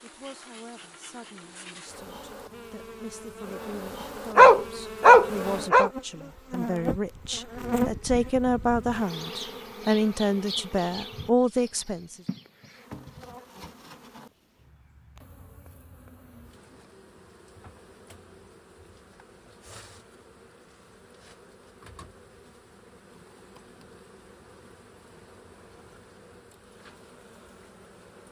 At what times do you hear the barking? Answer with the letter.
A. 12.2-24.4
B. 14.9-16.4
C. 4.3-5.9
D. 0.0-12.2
C.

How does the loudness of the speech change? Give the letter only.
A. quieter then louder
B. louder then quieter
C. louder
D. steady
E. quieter
C.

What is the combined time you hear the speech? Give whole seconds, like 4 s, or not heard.
12 s.